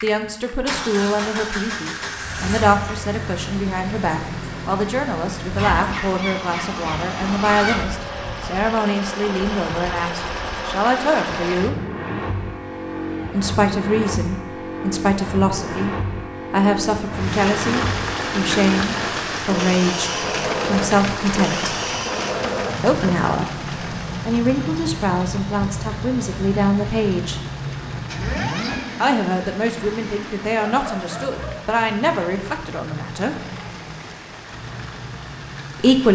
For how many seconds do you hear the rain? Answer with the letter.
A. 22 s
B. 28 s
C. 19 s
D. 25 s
C.